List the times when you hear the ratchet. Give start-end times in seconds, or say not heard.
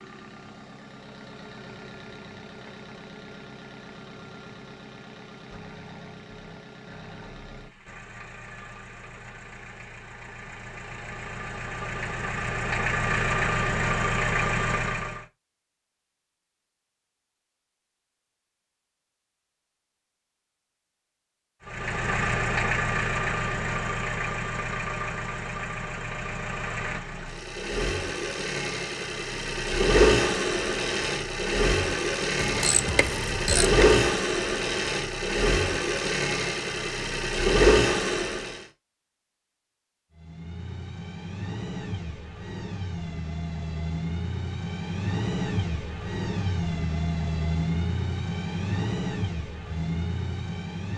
32.4-34.0.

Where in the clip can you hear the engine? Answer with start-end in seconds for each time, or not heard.
0.0-15.2, 21.6-38.6, 40.1-50.9.